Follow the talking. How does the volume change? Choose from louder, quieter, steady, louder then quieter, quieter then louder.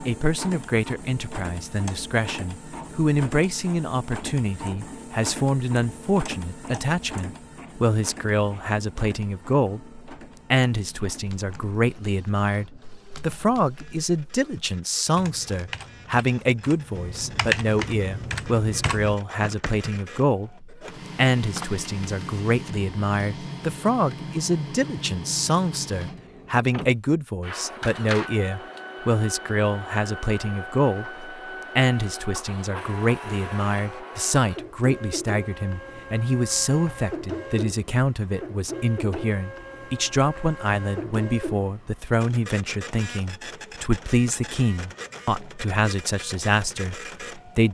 steady.